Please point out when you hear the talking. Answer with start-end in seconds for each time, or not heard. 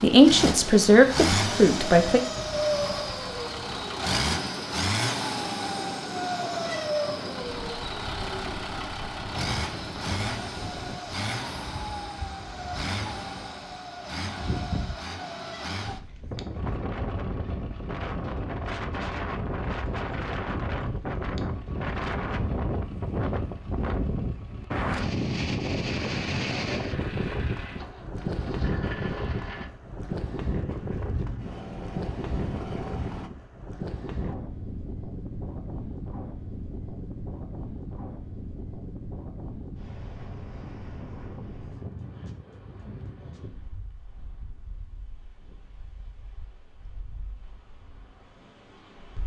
0.0-2.2.